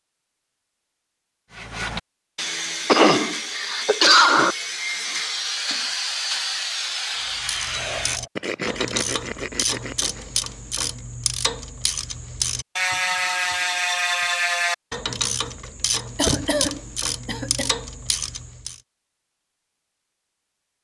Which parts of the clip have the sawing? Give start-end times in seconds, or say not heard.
1.5-10.2.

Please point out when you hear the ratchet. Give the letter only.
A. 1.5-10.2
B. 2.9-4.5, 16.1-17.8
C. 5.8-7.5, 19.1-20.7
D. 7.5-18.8
D.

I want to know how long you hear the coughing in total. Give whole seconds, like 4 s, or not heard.
3 s.